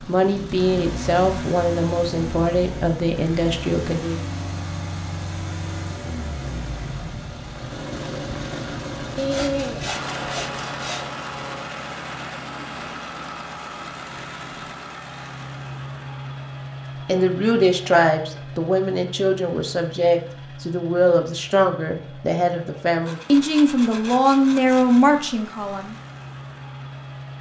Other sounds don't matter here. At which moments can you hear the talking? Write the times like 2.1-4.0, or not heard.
0.0-4.2, 17.1-25.9.